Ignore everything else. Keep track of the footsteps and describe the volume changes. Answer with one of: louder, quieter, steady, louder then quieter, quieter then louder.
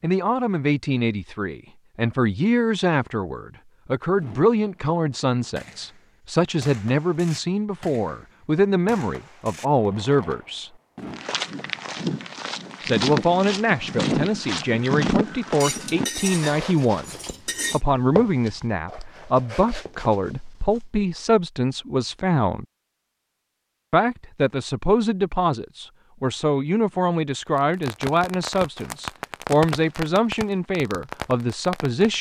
quieter.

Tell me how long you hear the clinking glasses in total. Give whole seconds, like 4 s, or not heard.
2 s.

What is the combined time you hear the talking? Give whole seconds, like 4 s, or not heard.
29 s.